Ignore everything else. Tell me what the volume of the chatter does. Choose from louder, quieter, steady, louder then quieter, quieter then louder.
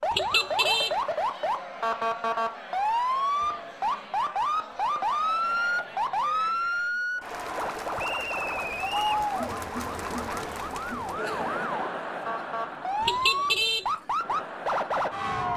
louder then quieter.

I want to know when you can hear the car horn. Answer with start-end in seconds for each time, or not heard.
0.1-0.9, 13.0-13.8.